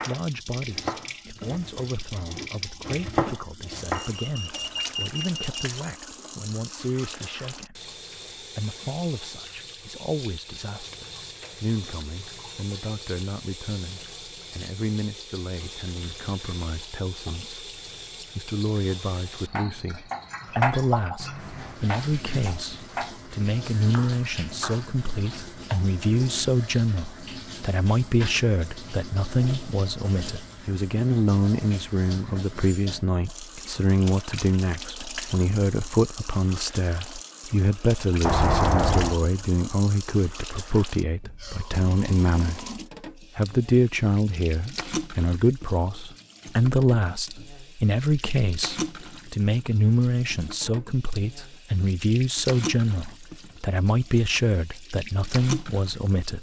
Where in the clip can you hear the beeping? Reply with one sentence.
The beeping can be heard from 4.0 to 5.6 s and from 38.2 to 39.1 s.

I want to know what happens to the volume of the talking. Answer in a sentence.
The volume of the talking goes up.